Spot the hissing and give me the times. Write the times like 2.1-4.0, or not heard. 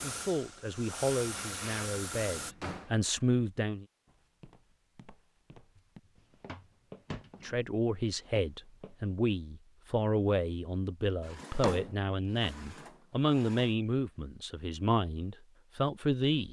0.0-2.5.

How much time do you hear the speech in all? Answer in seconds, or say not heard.
13 s.